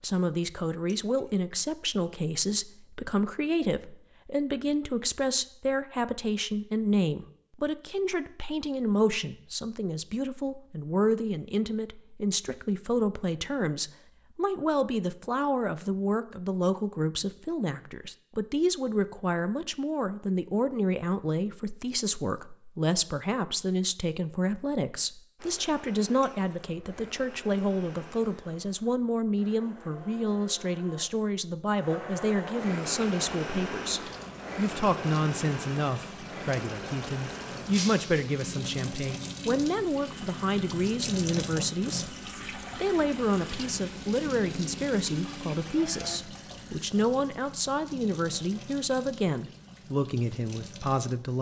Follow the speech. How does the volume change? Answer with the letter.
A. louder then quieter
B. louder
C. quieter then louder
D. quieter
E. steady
E.